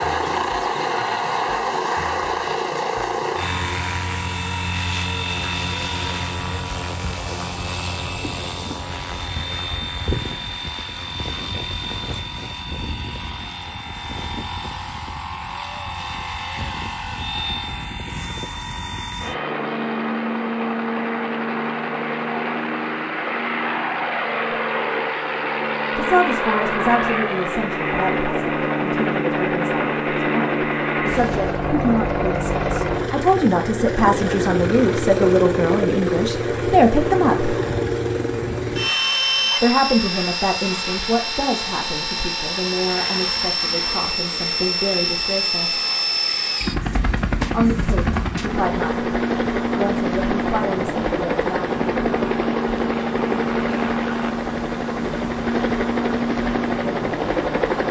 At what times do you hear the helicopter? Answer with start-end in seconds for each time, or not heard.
0.0-57.8.